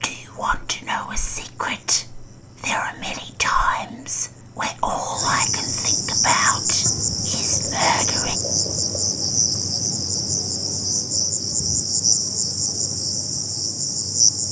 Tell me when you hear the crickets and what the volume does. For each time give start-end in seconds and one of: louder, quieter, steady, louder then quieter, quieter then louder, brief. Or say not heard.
0.1-14.4 louder.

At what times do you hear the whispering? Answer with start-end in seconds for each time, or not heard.
0.0-8.3.